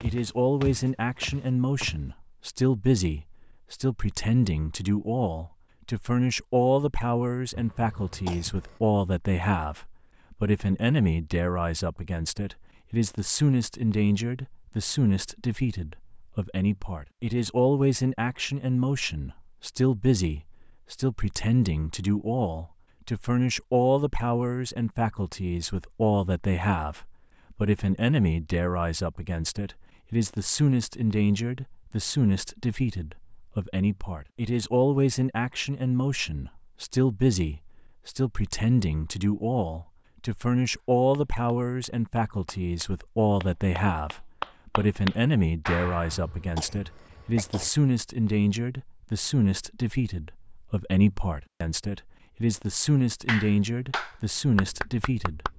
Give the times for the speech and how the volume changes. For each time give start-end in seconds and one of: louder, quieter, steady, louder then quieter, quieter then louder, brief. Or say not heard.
0.0-55.5 steady.